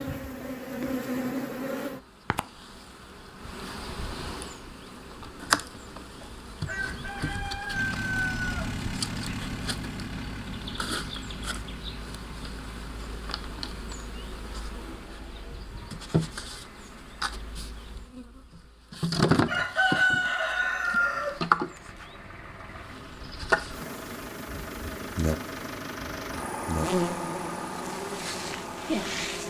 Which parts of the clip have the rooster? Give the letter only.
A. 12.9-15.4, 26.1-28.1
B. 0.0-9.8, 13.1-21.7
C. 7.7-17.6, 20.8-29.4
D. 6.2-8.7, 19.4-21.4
D.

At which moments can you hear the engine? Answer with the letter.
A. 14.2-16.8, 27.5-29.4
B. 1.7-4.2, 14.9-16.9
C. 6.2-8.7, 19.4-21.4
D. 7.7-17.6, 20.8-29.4
D.